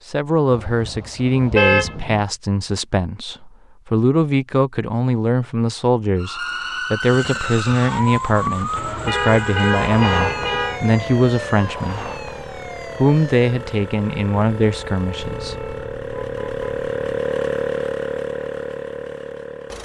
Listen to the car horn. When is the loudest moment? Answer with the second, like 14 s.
2 s.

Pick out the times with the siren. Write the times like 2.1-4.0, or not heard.
6.2-16.0.